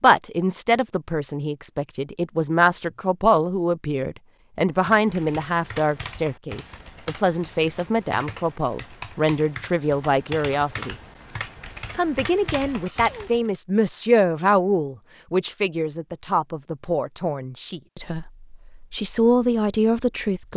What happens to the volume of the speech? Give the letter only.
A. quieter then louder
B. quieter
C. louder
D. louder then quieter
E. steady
E.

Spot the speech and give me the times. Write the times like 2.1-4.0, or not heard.
0.0-10.9, 11.9-20.5.